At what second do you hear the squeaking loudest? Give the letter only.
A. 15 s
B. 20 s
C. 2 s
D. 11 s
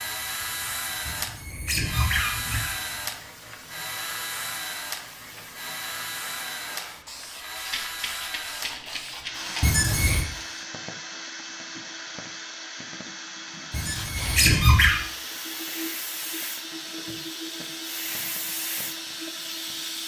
A.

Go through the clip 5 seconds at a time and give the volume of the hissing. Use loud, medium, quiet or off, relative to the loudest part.
medium, medium, loud, loud.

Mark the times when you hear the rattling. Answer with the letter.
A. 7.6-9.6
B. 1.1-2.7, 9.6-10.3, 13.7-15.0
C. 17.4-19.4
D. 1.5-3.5
A.